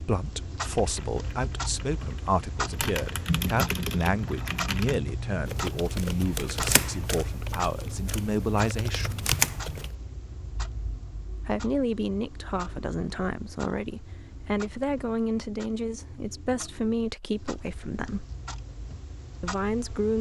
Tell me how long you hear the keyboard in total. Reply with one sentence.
The keyboard can be heard for 9 seconds in total.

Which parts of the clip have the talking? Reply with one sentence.
The talking can be heard from 0.0 to 9.3 s, from 11.3 to 18.2 s and from 19.4 to 20.1 s.